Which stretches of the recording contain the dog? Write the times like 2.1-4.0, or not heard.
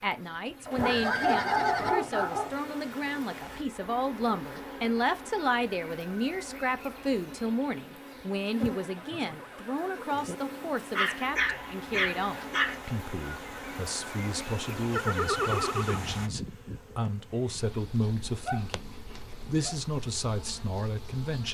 0.7-2.5, 10.9-12.8, 18.1-19.8.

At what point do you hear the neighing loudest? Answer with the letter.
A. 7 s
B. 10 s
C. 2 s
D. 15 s
D.